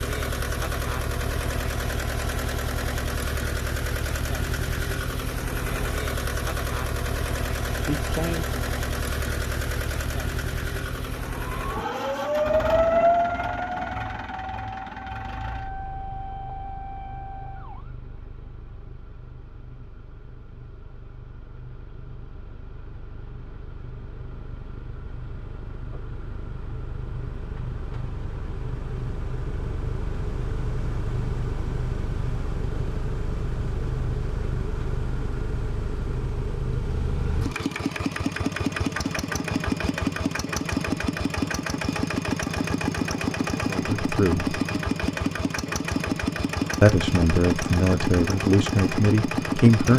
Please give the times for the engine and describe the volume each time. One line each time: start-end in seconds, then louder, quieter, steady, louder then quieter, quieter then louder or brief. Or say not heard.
0.0-49.9 quieter then louder.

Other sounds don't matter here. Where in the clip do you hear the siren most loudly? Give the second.
13 s.